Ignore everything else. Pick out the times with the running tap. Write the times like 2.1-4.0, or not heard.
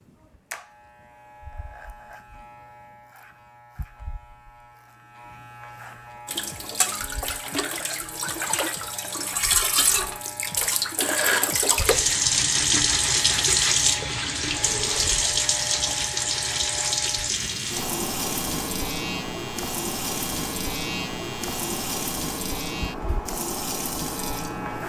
6.2-24.8.